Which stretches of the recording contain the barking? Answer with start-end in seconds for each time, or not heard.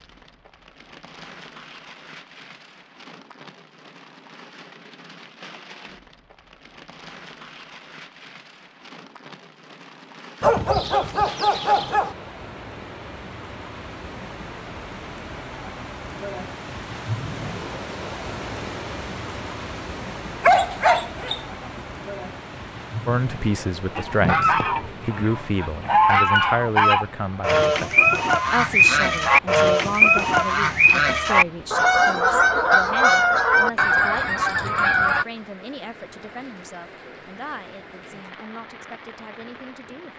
10.4-12.2, 20.4-21.4.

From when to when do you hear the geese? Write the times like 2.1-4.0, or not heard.
23.9-35.2.